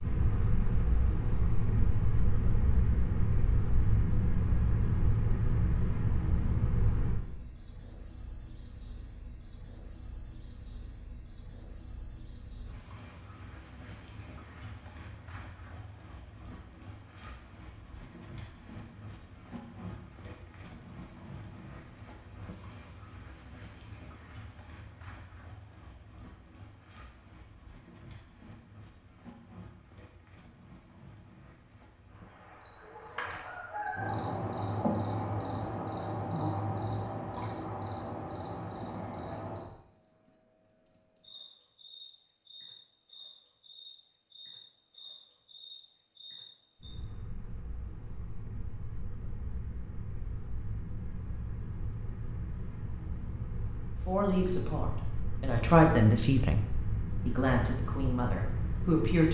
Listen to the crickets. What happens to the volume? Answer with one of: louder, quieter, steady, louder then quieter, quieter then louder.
quieter.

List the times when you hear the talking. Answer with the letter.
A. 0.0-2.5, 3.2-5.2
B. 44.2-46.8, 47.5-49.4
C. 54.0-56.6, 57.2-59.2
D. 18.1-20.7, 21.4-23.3
C.